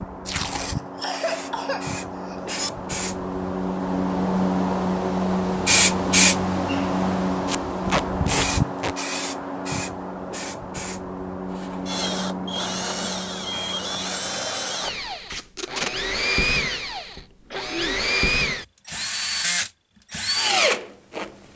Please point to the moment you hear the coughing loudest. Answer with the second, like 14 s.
1 s.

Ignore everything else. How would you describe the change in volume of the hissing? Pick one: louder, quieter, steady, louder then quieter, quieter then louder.
louder then quieter.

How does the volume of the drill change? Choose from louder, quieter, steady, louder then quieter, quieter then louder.
louder.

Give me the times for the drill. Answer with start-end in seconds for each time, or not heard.
11.6-21.5.